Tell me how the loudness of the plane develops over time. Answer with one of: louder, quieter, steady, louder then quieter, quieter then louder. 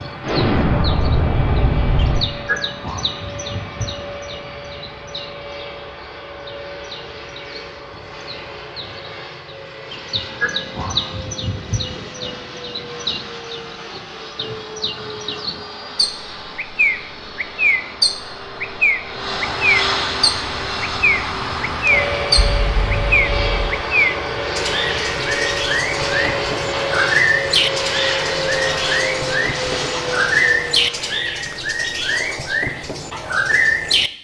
louder.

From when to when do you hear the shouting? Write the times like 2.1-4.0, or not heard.
not heard.